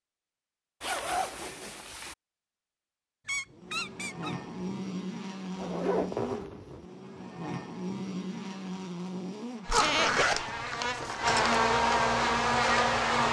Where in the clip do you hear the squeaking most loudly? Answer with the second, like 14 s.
10 s.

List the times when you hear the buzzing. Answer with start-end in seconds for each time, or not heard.
3.5-13.2.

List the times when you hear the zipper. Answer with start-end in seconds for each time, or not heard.
0.8-2.1, 5.5-6.8, 9.7-11.6.